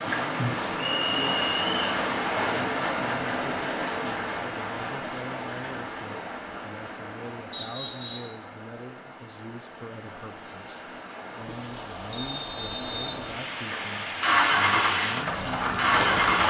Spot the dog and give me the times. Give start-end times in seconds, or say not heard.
not heard.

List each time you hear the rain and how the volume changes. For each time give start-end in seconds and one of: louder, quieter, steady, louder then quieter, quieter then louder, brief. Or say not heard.
0.0-16.4 quieter then louder.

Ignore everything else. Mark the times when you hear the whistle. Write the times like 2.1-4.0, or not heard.
0.8-1.8, 7.5-8.3, 12.1-13.2.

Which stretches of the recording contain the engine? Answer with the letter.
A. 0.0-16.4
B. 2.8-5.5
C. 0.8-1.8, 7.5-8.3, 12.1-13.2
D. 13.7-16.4
D.